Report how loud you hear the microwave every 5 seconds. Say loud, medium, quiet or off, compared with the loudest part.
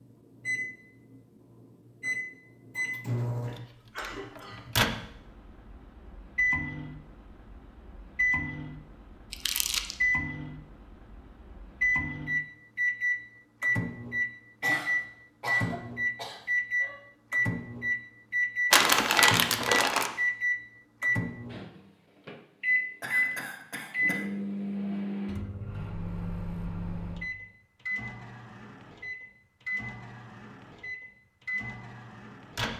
loud, medium, loud, loud, loud, medium, medium.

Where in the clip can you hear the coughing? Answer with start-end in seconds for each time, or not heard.
3.5-4.6, 14.6-16.9, 23.0-24.2.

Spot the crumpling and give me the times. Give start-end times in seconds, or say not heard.
9.3-9.9, 18.7-20.1.